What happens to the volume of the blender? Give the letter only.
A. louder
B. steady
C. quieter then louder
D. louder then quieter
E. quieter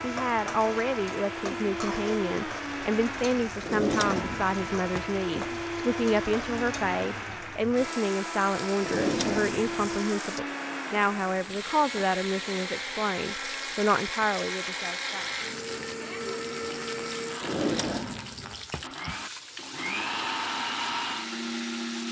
B.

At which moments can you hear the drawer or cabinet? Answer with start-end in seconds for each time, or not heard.
3.6-5.0, 8.8-10.0, 17.4-18.9.